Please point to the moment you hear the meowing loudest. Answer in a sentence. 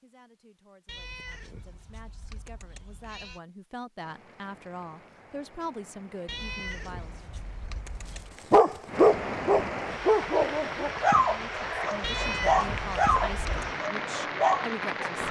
The volume of the meowing peaks at 12 seconds.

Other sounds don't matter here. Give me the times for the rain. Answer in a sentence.
The rain can be heard from 4.0 to 15.2 s.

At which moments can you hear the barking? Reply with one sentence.
The barking can be heard from 8.5 to 15.2 s.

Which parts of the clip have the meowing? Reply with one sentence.
You can hear the meowing from 0.8 to 3.4 s, from 6.2 to 8.4 s and from 12.0 to 13.7 s.